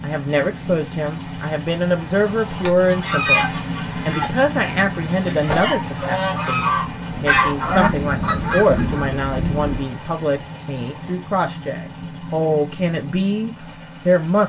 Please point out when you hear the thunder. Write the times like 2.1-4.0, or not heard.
7.2-9.9.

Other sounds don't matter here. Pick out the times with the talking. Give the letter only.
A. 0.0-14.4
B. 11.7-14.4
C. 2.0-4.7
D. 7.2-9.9
A.